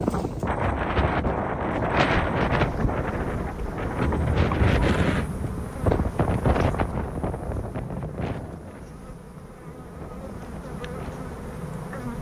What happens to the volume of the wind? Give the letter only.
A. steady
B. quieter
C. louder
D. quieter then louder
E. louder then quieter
B.